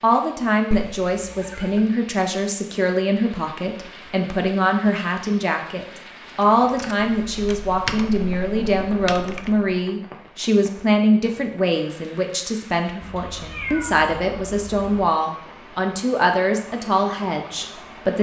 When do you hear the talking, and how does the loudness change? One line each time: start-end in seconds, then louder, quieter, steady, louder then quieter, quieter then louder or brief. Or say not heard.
0.0-18.1 steady.